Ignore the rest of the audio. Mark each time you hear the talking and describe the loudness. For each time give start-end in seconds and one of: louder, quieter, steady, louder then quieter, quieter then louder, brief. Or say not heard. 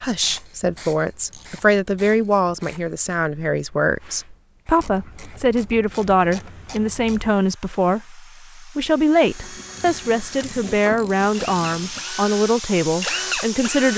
0.0-13.9 steady.